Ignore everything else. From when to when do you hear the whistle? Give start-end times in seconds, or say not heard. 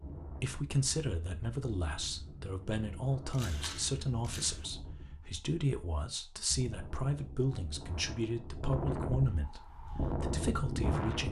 not heard.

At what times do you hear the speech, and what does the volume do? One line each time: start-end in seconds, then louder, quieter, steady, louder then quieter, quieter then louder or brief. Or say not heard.
0.4-11.2 steady.